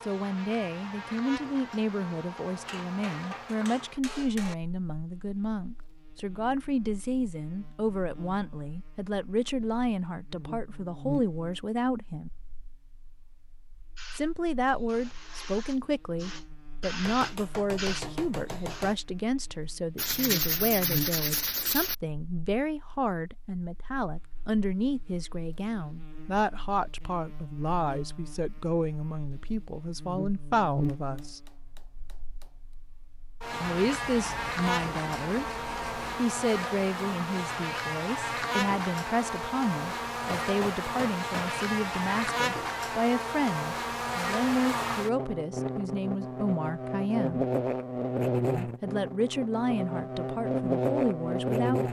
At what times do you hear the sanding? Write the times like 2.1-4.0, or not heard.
19.9-21.9, 33.8-36.2.